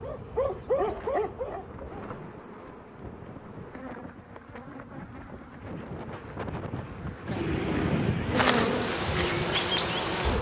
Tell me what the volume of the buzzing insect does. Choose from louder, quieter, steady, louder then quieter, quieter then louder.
louder.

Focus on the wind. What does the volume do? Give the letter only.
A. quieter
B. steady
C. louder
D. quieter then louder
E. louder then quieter
C.